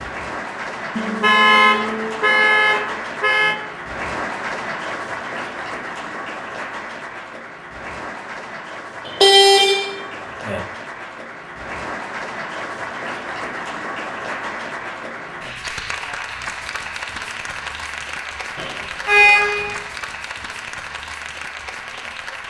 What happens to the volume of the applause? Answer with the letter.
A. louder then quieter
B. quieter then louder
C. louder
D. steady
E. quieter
D.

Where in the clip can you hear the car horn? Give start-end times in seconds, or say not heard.
0.9-3.5, 9.1-10.6, 18.6-19.8.